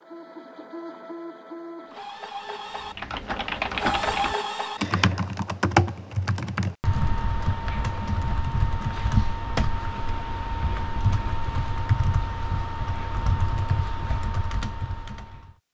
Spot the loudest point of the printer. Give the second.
4 s.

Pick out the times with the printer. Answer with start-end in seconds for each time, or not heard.
0.0-5.0.